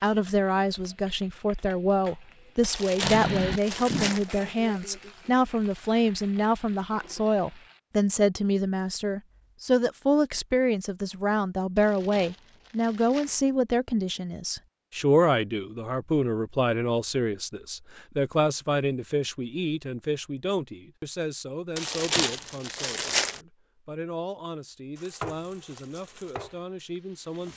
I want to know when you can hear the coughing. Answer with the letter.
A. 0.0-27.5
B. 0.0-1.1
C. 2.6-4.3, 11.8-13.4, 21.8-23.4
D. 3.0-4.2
D.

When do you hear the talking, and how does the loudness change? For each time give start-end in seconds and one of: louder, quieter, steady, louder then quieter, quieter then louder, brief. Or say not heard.
0.0-27.5 quieter.